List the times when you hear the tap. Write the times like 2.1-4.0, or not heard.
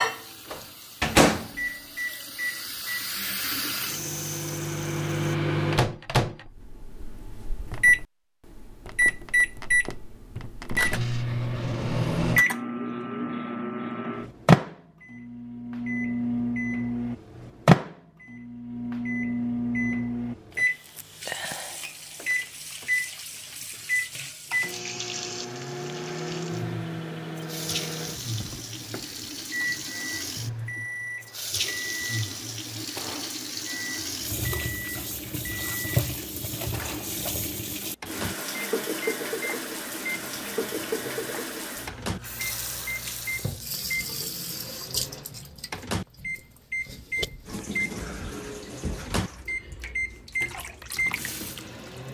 0.0-5.3, 20.9-52.1.